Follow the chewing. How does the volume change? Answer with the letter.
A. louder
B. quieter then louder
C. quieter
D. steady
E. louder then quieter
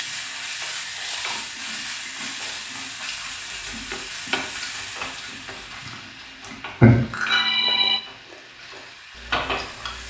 E.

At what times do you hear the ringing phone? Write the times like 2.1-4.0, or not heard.
6.8-8.0.